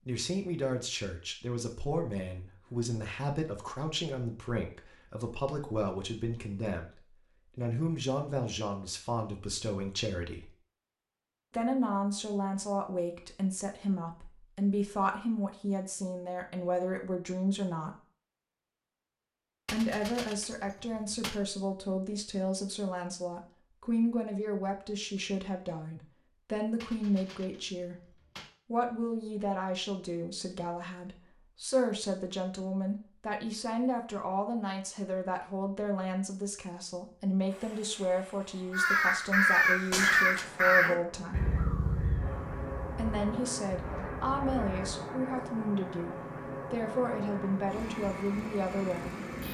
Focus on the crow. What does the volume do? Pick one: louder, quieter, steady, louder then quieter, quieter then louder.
quieter.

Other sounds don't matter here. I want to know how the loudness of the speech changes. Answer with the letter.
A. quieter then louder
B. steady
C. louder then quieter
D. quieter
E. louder
B.